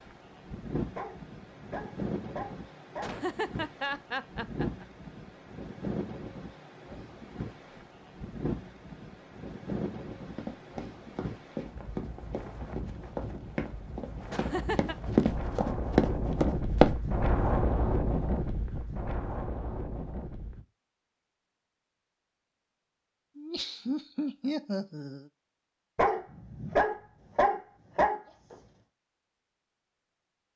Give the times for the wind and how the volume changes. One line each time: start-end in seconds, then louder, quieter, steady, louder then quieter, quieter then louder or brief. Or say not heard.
0.0-20.6 louder.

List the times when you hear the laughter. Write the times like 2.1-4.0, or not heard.
3.0-4.8, 14.3-14.9, 23.4-25.3.